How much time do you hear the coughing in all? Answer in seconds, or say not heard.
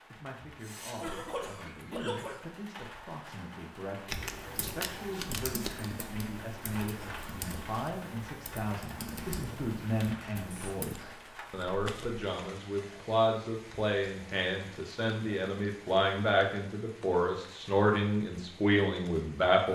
2 s.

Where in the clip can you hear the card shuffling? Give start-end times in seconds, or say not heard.
4.0-5.9, 10.5-12.2.